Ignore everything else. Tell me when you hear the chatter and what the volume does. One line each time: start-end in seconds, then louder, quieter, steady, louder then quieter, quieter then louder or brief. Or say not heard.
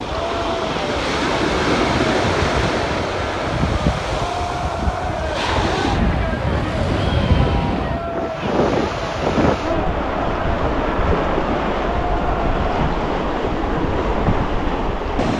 0.0-12.8 steady.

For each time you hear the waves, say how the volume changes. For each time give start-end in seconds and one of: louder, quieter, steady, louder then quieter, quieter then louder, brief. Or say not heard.
0.0-15.3 steady.